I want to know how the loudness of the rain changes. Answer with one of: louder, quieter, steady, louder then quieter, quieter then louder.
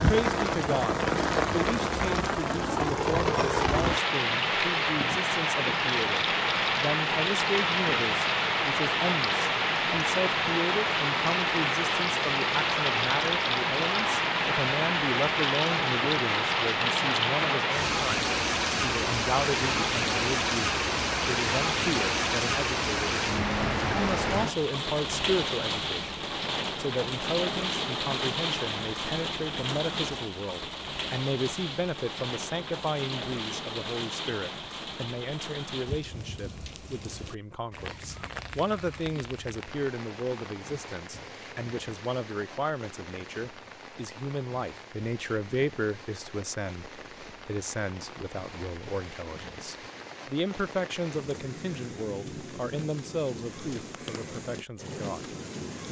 quieter.